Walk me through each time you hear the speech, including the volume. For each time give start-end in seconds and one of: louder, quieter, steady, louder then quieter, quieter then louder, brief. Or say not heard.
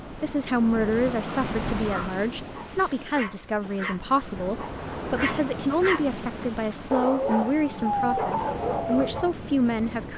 0.2-10.1 steady.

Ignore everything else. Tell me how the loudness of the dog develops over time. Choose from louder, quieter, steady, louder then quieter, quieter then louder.
louder.